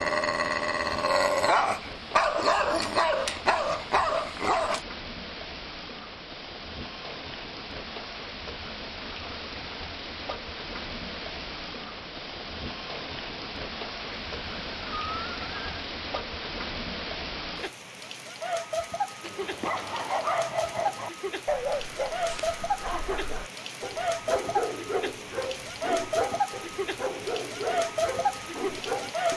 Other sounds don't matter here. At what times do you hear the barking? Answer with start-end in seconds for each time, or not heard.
0.0-4.8, 19.2-29.3.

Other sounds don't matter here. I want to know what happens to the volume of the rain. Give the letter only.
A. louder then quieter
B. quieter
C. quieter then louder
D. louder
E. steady
D.